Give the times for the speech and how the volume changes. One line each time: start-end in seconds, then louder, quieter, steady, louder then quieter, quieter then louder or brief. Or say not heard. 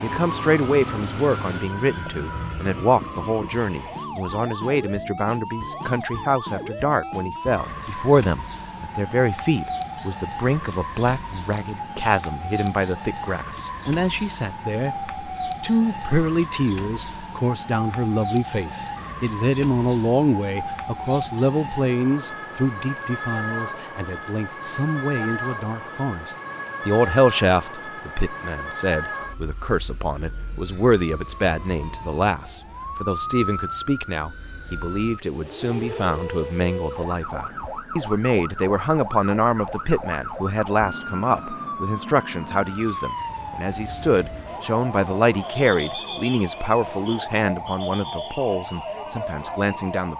0.0-50.1 steady.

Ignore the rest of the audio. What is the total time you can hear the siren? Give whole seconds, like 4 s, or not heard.
50 s.